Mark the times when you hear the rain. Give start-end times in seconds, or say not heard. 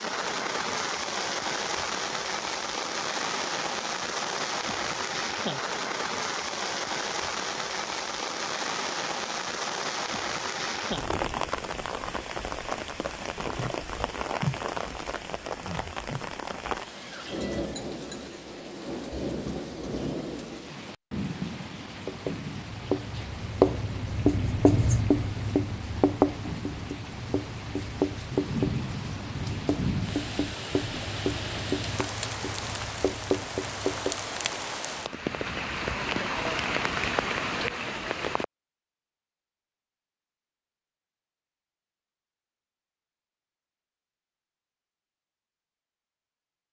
0.0-38.5.